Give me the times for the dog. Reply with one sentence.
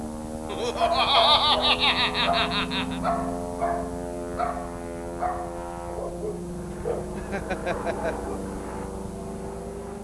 The dog can be heard from 0.8 to 8.4 s.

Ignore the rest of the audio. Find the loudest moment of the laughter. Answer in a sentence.
The loudest moment of the laughter is at 1 second.